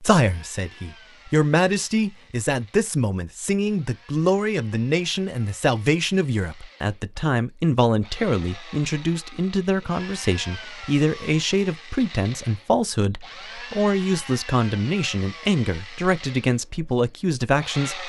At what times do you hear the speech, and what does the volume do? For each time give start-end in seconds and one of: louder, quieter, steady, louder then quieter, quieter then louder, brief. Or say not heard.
0.0-18.0 steady.